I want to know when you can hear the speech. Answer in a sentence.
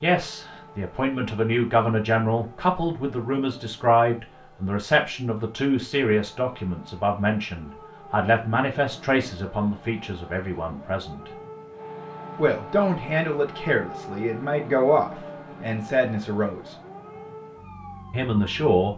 You can hear the speech from 0.0 to 11.2 s, from 12.3 to 16.8 s and from 18.1 to 18.9 s.